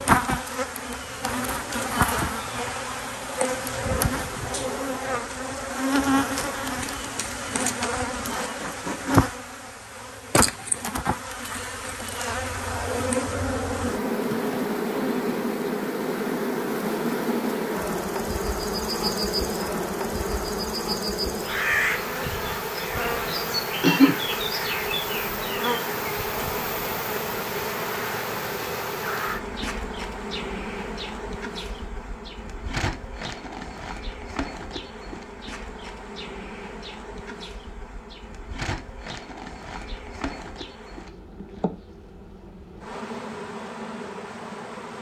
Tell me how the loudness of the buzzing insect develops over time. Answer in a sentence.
The volume of the buzzing insect goes down.